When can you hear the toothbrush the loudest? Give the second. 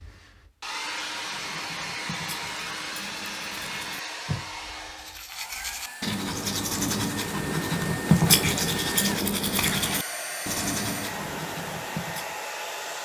8 s.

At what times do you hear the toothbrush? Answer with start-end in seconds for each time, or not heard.
0.9-12.4.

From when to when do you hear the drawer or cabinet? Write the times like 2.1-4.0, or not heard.
not heard.